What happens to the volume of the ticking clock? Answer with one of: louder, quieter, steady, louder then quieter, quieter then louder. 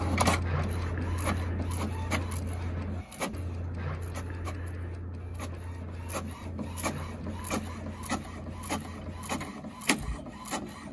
quieter.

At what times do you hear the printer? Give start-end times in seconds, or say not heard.
0.0-10.8.